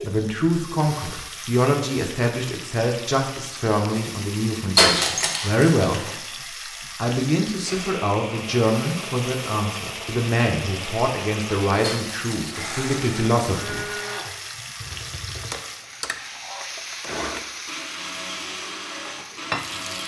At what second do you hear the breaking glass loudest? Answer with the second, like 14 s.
5 s.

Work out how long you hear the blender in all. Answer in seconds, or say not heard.
12 s.